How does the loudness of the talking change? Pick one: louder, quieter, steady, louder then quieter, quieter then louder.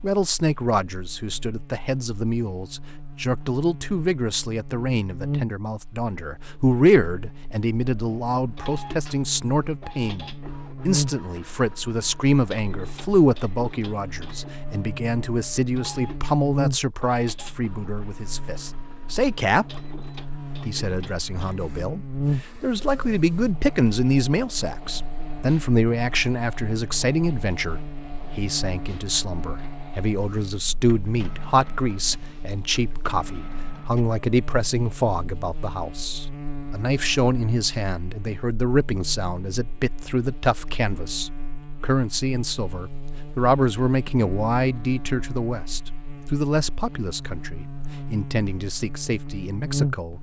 steady.